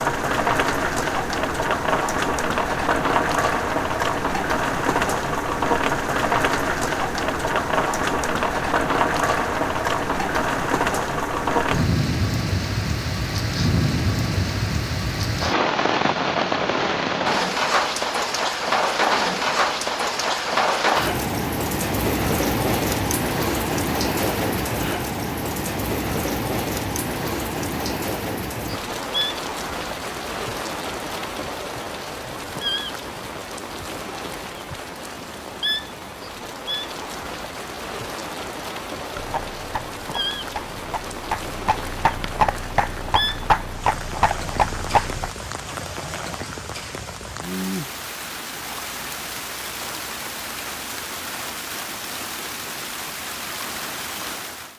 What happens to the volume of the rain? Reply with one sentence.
The loudness of the rain goes down.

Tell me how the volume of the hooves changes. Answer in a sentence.
The volume of the hooves goes up.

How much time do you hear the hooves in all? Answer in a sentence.
You can hear the hooves for 6 seconds altogether.